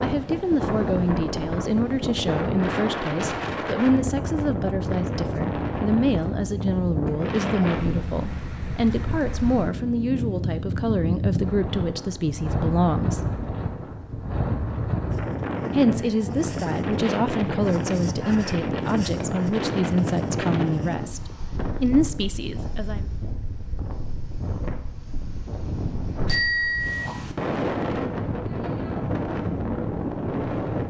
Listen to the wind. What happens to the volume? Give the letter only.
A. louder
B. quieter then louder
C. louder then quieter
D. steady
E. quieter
D.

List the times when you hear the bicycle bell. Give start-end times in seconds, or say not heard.
26.2-27.1.